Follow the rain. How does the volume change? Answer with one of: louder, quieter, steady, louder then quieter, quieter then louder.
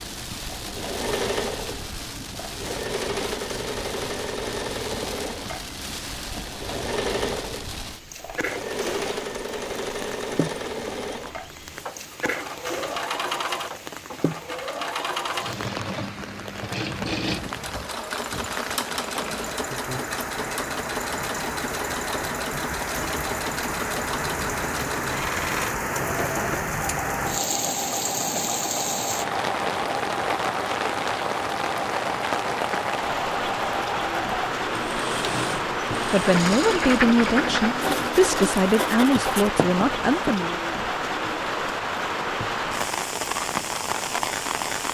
louder.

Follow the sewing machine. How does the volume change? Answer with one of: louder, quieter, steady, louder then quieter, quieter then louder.
steady.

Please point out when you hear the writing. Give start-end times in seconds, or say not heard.
36.2-40.5.